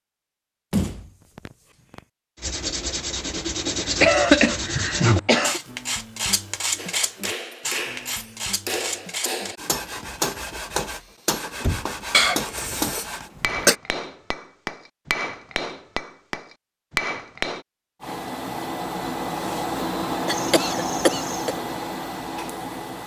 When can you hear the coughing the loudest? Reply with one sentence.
The loudest moment of the coughing is at 4 seconds.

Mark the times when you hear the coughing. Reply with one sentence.
The coughing can be heard from 4.0 to 5.6 s, from 12.1 to 13.8 s and from 20.2 to 21.6 s.